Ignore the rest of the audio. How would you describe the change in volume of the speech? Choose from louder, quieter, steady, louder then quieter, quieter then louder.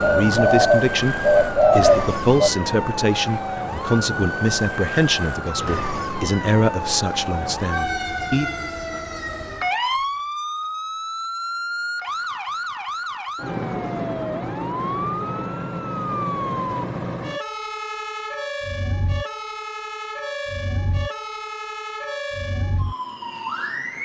steady.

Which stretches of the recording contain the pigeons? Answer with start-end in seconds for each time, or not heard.
0.0-2.5.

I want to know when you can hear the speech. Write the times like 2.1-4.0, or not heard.
0.0-8.6.